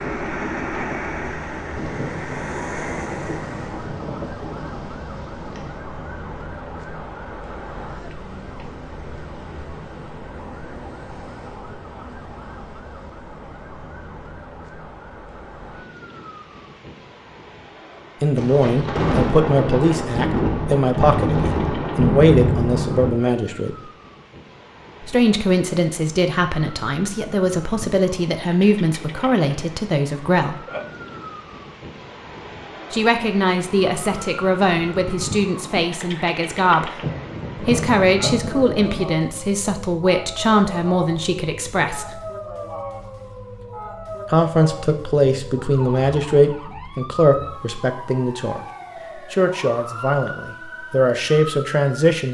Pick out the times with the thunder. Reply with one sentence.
The thunder can be heard from 1.8 to 5.8 s, from 18.4 to 23.1 s and from 37.0 to 39.0 s.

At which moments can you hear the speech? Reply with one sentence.
The speech can be heard from 18.2 to 23.8 s, from 25.0 to 30.6 s, from 32.9 to 42.2 s, from 44.2 to 48.6 s and from 49.3 to 52.3 s.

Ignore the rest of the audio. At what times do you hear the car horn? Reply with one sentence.
You can't hear the car horn here.